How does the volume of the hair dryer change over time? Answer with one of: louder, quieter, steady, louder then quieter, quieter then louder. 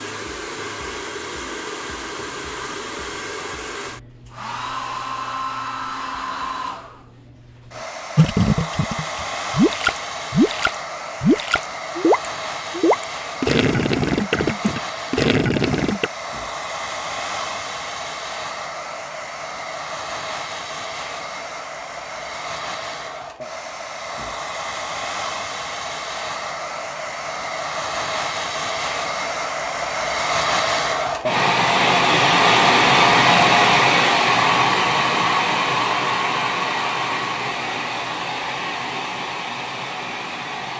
louder.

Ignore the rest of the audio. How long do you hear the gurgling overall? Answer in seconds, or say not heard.
8 s.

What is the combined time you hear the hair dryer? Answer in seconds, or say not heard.
41 s.